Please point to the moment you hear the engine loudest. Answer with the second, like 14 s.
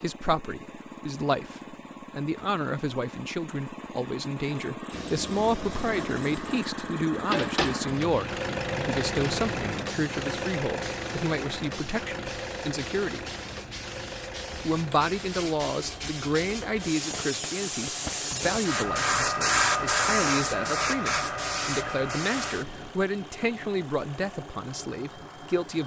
9 s.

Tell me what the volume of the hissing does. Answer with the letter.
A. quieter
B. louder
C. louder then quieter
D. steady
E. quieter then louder
E.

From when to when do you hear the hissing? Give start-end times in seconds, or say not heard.
4.9-22.9.